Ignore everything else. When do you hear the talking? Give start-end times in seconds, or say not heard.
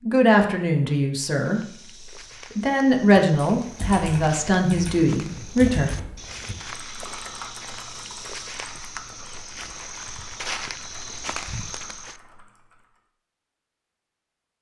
0.0-5.9.